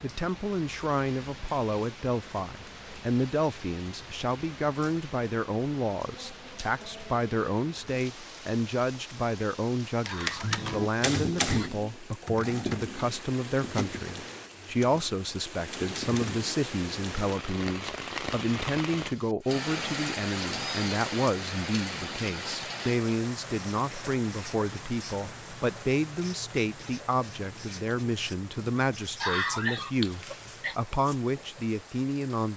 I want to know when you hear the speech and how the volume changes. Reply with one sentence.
The speech can be heard from 0.0 to 32.5 s, at a steady volume.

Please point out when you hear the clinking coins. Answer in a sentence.
You can't hear the clinking coins here.